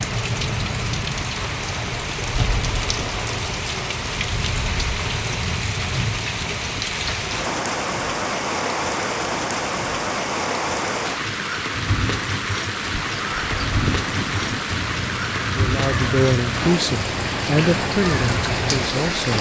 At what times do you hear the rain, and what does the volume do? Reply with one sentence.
You can hear the rain from 0.0 to 19.3 s, at a steady volume.